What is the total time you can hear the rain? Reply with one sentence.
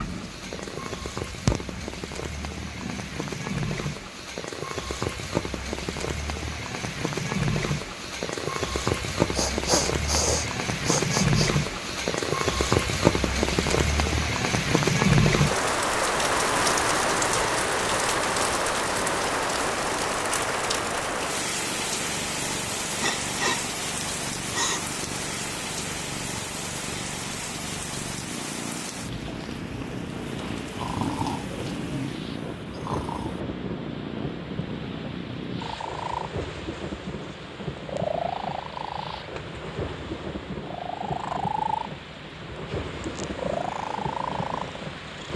The rain can be heard for 45 seconds in total.